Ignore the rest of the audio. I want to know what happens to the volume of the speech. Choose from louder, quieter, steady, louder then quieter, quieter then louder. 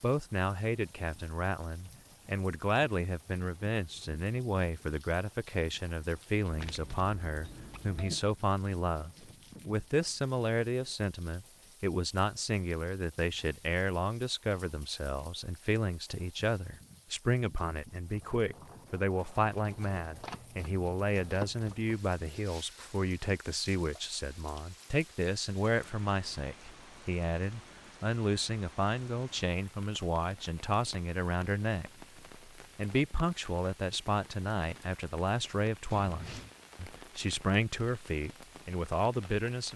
steady.